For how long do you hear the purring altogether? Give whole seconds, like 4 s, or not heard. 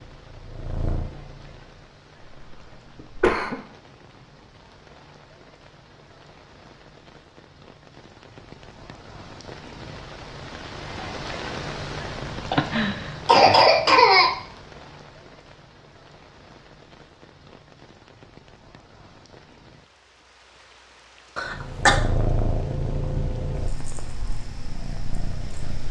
6 s.